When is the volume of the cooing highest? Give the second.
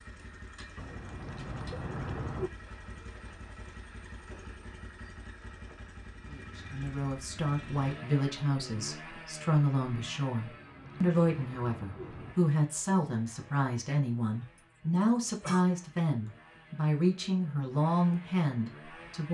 2 s.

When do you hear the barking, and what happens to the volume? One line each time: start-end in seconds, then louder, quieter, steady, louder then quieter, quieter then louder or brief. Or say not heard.
not heard.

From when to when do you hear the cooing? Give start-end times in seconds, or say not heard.
0.8-2.5, 10.3-12.3.